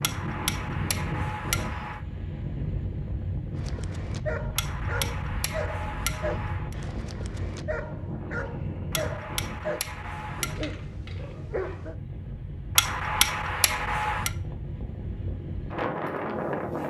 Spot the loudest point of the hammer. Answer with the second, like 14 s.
13 s.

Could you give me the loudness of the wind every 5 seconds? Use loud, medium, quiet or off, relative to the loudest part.
loud, medium, medium, loud.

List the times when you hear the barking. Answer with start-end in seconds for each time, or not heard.
3.5-11.9.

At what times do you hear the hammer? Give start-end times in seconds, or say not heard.
0.0-2.0, 4.5-6.8, 8.9-10.6, 12.8-14.3.